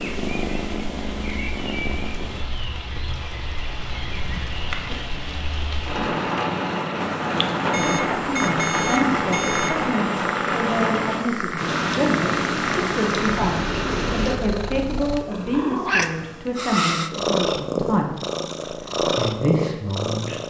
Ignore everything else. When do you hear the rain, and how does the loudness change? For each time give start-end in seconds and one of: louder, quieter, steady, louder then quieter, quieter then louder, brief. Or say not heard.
0.0-14.4 louder.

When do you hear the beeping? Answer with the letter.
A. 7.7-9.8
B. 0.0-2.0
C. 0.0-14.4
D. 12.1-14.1
A.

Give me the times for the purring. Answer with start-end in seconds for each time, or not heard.
0.0-2.5, 7.0-20.4.